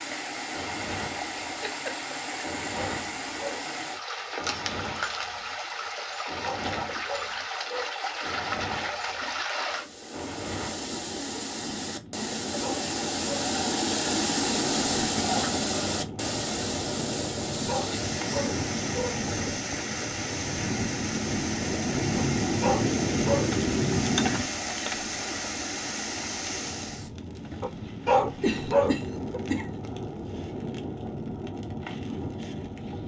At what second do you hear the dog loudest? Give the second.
28 s.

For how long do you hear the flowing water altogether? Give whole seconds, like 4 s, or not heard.
27 s.